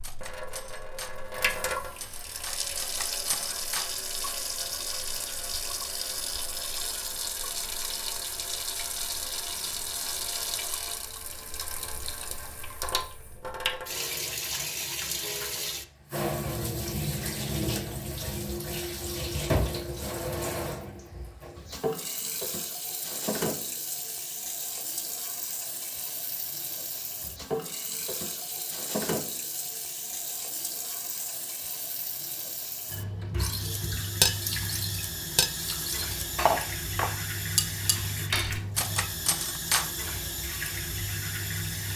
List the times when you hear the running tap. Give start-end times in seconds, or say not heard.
0.0-41.9.